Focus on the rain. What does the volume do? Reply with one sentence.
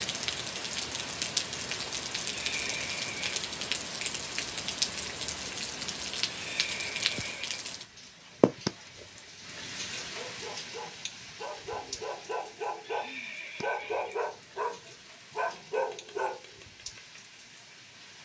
The loudness of the rain goes down.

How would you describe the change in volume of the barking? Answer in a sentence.
The loudness of the barking goes up.